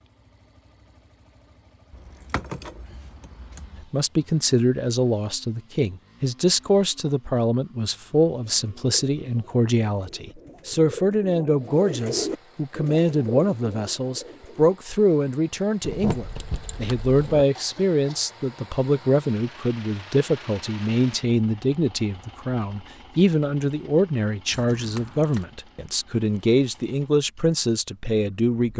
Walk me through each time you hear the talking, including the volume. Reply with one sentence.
The talking can be heard from 3.9 to 28.7 s, at a steady volume.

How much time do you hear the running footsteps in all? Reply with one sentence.
You can't hear the running footsteps here.